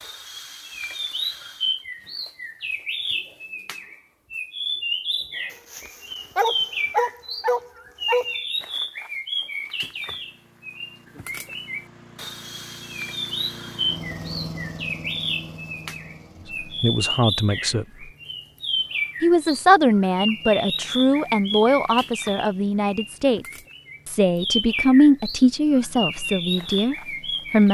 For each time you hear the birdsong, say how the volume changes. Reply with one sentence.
The birdsong can be heard from 0.0 to 27.6 s, at a steady volume.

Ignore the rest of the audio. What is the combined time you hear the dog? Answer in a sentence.
You can hear the dog for 3 seconds altogether.